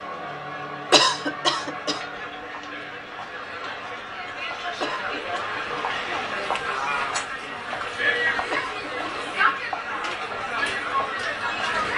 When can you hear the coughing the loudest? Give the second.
1 s.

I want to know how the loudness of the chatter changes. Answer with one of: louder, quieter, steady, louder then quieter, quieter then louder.
louder.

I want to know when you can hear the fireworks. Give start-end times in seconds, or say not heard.
not heard.